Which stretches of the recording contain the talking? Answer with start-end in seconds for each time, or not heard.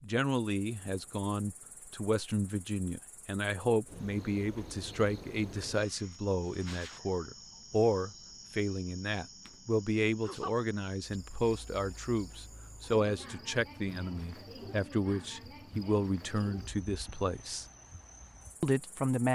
0.0-17.6, 18.6-19.3.